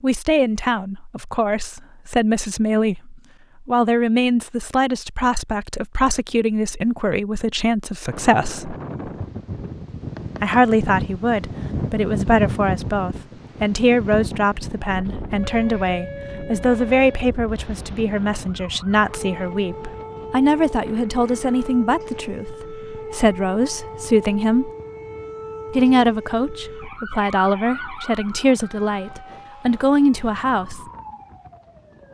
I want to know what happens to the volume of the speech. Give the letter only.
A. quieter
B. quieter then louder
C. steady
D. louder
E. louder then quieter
C.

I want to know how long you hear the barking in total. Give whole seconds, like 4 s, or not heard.
not heard.